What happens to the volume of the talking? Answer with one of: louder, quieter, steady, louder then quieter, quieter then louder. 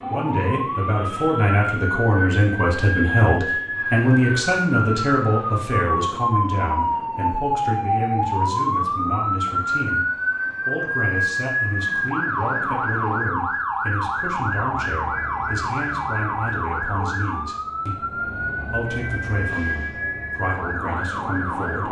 quieter.